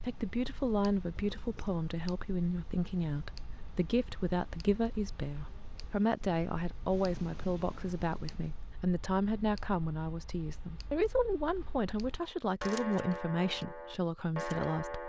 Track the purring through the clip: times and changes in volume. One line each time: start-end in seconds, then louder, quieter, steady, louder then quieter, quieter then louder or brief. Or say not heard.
not heard.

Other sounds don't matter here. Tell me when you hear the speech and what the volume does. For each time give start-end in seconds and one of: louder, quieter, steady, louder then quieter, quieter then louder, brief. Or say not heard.
0.0-15.0 steady.